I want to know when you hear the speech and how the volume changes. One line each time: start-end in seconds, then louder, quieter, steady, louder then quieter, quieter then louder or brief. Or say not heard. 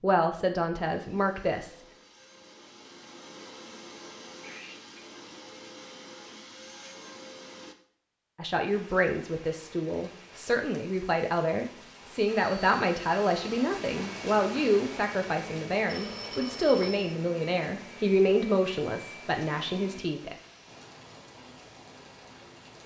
0.0-1.8 brief
8.3-20.4 steady.